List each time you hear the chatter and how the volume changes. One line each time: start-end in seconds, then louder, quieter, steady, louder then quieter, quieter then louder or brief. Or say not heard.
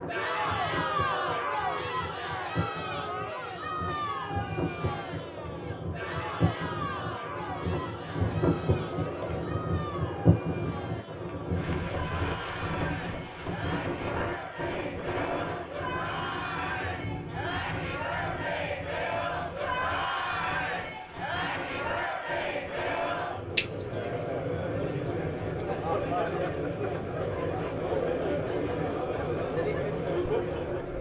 0.0-30.9 quieter then louder.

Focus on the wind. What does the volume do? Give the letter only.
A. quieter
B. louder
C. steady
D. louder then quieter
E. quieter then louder
D.